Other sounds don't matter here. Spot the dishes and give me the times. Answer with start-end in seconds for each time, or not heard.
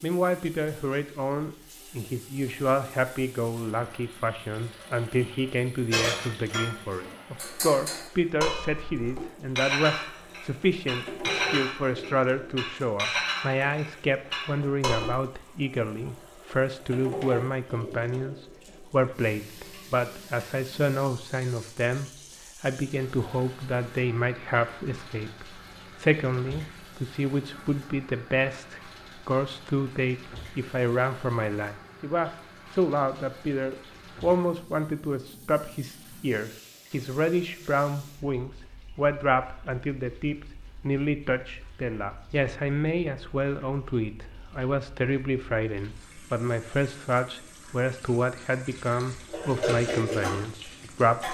5.9-15.2, 49.2-51.2.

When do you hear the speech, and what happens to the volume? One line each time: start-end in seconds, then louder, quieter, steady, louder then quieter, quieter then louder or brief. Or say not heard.
0.0-51.2 steady.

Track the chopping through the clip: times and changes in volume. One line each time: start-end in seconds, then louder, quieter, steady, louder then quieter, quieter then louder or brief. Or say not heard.
not heard.